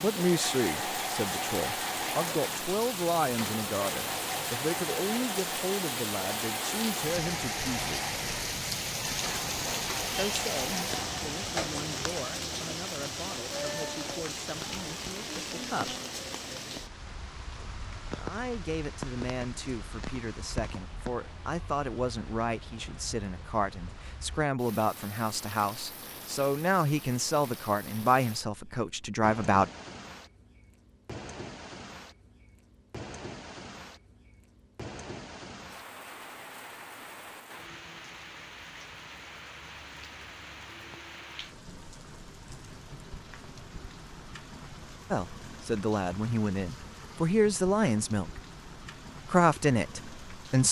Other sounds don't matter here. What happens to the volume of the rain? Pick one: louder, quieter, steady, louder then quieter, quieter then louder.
quieter.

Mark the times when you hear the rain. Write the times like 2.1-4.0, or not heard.
0.0-50.6.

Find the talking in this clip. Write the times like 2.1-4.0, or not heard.
0.0-8.2, 10.1-15.9, 18.1-29.7, 45.1-48.3, 49.2-50.6.